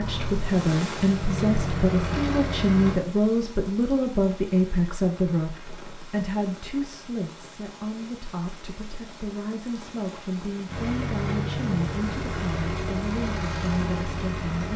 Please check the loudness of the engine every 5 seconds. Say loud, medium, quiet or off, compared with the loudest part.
loud, off, loud.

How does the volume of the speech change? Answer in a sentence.
The volume of the speech goes down.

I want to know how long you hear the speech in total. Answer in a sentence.
You can hear the speech for 15 seconds altogether.